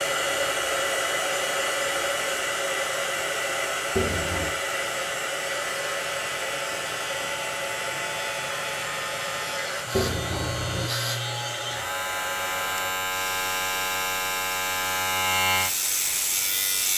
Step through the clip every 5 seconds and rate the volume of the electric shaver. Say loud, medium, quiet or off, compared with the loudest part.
quiet, medium, loud, loud.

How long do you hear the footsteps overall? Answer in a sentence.
The footsteps can't be heard in this clip.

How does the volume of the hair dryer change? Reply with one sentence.
The volume of the hair dryer goes down.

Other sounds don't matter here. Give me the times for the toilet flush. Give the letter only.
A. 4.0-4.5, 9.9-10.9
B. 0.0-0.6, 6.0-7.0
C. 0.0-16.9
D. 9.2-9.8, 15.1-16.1
A.